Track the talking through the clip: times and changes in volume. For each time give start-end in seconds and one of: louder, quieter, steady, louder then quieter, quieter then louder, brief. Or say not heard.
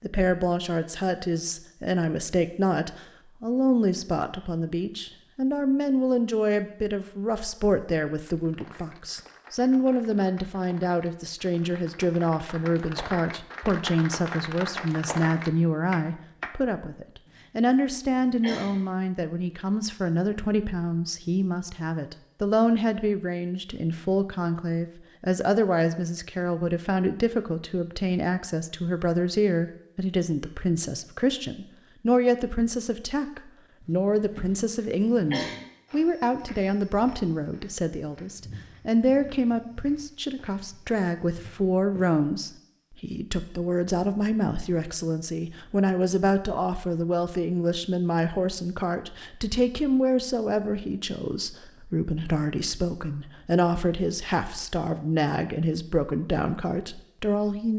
0.0-57.7 steady.